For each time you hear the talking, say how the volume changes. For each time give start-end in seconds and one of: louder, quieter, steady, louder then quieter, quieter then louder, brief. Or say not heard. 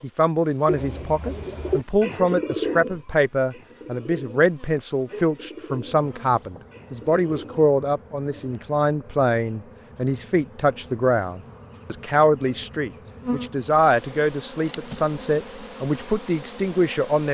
0.0-17.3 steady.